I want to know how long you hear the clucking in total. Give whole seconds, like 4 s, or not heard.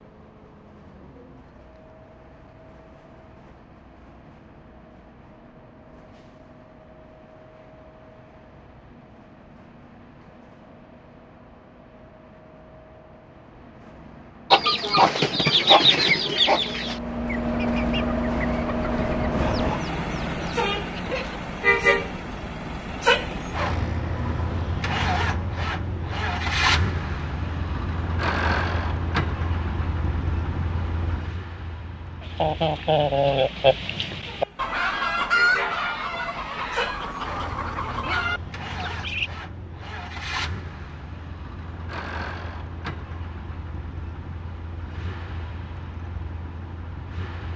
14 s.